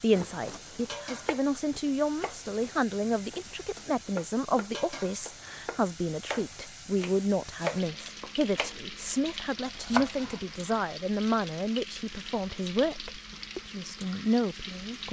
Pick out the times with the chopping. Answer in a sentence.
The chopping can be heard from 0.1 to 8.8 s and from 9.7 to 10.6 s.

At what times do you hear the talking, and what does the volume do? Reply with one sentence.
You can hear the talking from 0.0 to 15.0 s, at a steady volume.